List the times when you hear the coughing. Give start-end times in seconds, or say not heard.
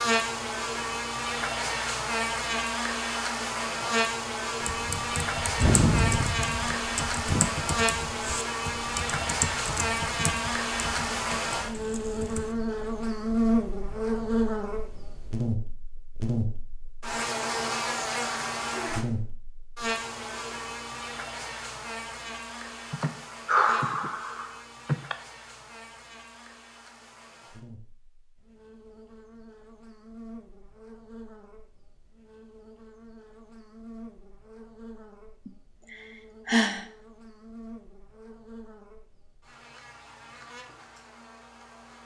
not heard.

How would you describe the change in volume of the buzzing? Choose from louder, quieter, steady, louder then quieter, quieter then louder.
quieter.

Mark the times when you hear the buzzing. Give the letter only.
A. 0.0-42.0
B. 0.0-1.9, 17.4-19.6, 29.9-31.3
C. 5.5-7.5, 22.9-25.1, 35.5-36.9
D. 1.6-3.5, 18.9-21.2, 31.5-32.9
A.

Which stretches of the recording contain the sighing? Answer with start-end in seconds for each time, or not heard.
5.5-7.5, 22.9-25.1, 35.5-36.9.